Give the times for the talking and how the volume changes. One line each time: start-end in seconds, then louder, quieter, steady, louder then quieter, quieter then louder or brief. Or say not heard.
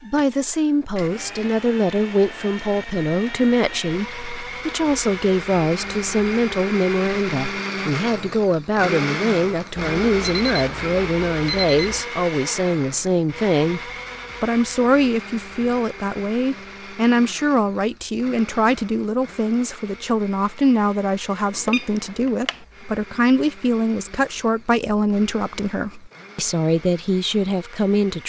0.0-28.2 steady.